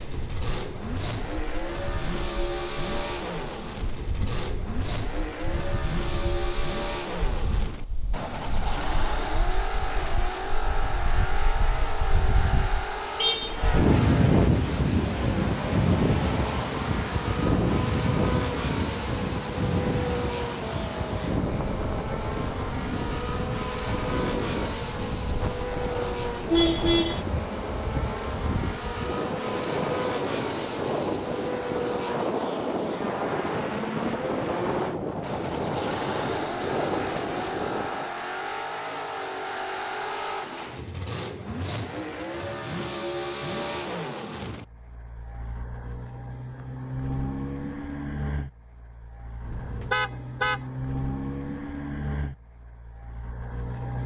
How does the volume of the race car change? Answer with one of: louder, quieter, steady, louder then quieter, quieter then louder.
steady.